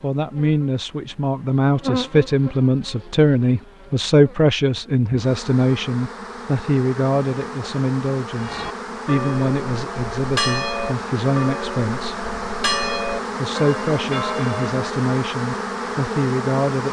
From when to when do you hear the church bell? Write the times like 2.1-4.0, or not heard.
8.3-14.8.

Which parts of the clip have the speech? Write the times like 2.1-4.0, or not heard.
0.0-12.2, 13.3-16.8.